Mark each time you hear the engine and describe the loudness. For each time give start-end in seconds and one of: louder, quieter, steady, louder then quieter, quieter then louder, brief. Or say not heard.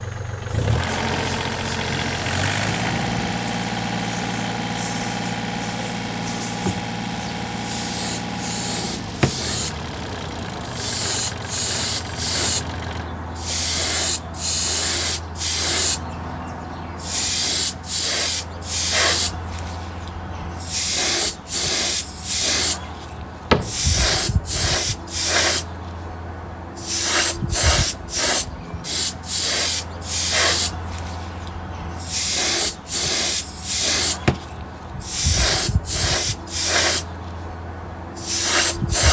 0.0-13.1 quieter.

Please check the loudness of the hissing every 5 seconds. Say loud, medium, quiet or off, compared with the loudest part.
medium, medium, loud, loud, loud, loud, loud, loud.